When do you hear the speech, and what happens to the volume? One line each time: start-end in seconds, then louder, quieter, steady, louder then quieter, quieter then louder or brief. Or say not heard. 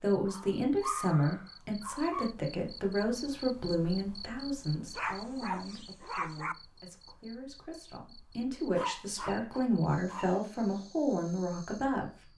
0.0-12.3 quieter then louder.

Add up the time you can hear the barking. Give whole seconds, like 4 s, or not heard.
5 s.